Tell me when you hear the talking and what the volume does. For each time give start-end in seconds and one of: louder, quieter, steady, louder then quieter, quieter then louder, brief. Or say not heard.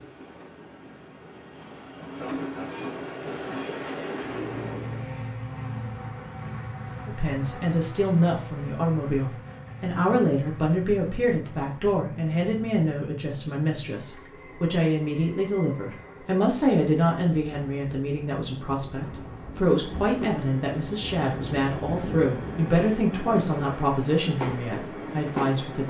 7.0-25.8 steady.